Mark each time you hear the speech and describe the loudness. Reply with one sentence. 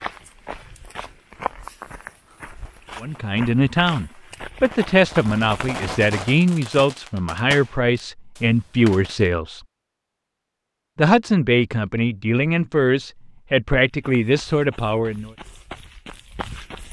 The speech can be heard from 3.0 to 9.6 s, at a steady volume; and from 10.9 to 15.3 s, at a steady volume.